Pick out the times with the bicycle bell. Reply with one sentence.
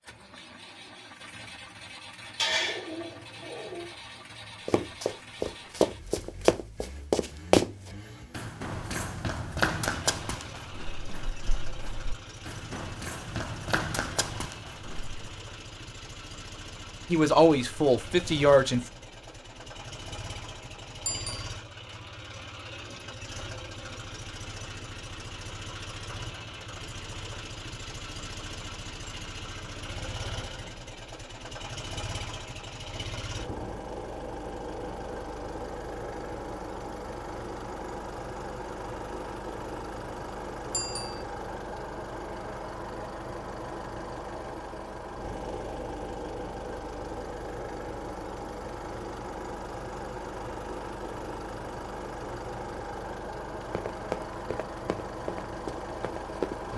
You can hear the bicycle bell from 21.1 to 21.6 s and from 40.7 to 41.2 s.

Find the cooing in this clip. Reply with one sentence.
You can hear the cooing from 2.4 to 3.9 s.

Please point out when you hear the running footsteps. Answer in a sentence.
You can hear the running footsteps from 4.7 to 15.3 s and from 53.5 to 56.7 s.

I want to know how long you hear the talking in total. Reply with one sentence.
You can hear the talking for 2 seconds altogether.